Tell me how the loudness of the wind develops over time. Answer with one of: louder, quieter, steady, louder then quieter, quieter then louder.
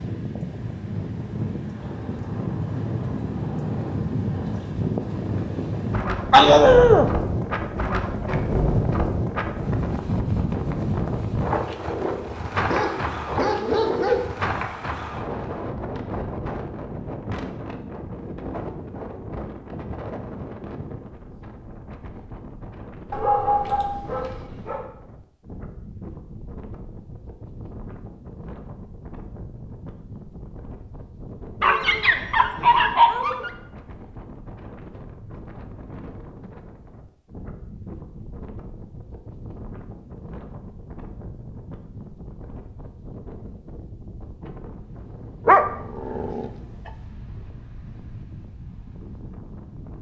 quieter.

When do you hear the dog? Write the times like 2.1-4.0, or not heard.
6.3-7.1, 12.7-14.2, 23.1-24.9, 31.6-33.5, 45.5-46.5.